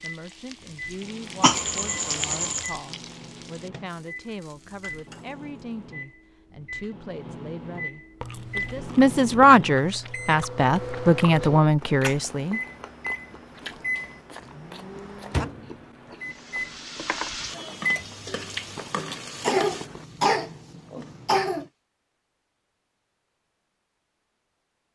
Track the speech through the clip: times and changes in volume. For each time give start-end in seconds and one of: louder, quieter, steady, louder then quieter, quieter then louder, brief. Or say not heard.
0.0-12.6 louder.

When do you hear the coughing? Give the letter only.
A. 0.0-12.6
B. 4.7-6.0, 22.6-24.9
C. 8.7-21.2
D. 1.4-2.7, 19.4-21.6
D.